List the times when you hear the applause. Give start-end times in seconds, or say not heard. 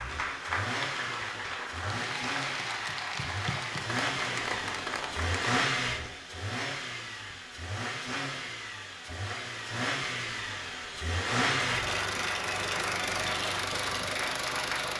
0.0-5.7, 11.4-14.9.